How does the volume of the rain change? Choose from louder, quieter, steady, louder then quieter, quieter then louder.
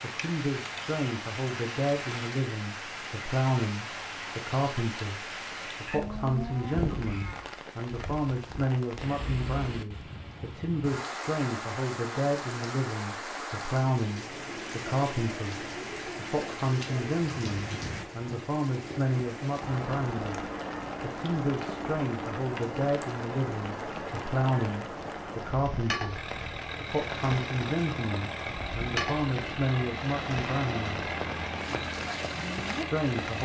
steady.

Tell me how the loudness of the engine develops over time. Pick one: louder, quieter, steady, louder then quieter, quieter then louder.
steady.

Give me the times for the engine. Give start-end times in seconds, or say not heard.
26.1-33.4.